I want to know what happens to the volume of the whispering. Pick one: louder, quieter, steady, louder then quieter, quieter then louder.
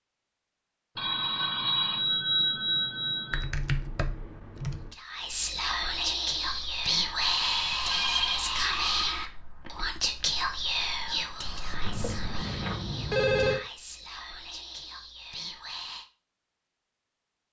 quieter.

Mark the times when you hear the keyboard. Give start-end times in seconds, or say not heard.
3.3-5.0.